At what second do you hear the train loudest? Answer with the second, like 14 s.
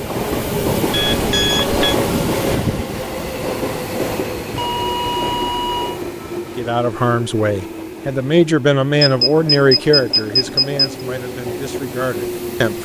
2 s.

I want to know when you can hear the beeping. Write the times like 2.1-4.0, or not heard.
0.9-1.9, 4.5-6.0, 9.0-10.9.